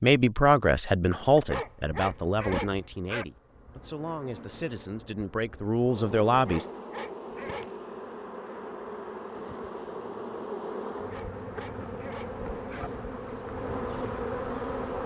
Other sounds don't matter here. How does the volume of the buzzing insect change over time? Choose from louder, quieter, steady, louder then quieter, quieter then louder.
louder.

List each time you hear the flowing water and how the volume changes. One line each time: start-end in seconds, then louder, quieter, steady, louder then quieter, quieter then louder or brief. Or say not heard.
not heard.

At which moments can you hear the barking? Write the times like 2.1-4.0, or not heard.
1.4-3.2, 6.3-7.8, 10.9-12.8.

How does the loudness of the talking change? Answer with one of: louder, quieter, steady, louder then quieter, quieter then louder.
quieter then louder.